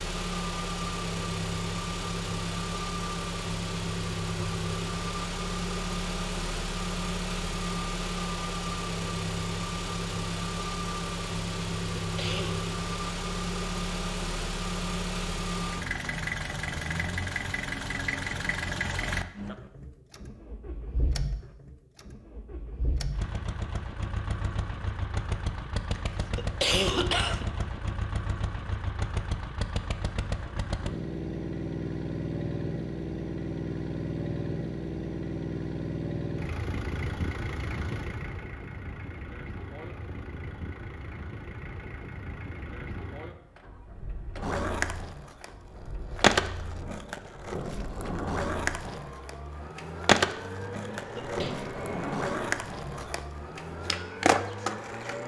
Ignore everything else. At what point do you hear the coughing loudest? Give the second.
27 s.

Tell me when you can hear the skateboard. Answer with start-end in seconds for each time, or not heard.
44.4-55.2.